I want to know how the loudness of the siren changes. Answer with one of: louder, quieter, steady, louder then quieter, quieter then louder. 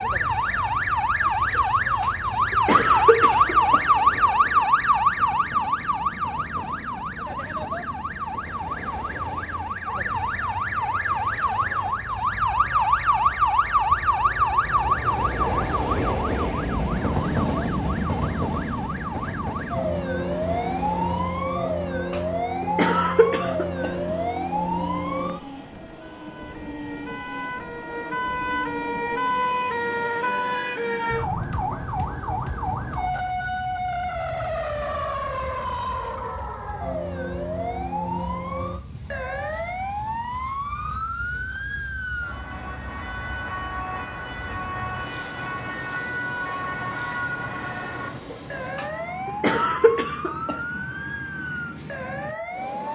quieter.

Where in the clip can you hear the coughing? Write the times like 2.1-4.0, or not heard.
1.6-3.8, 21.6-24.1, 48.3-50.8.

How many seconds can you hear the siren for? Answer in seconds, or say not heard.
53 s.